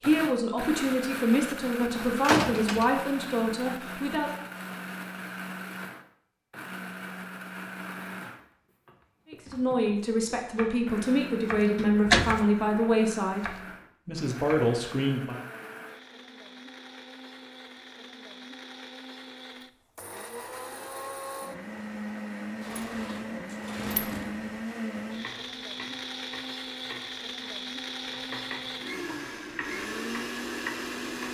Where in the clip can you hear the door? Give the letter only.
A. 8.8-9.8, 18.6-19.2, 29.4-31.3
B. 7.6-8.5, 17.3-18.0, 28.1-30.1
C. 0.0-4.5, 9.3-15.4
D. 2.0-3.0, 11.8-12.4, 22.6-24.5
D.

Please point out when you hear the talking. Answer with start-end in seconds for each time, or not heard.
0.0-4.5, 9.3-15.4.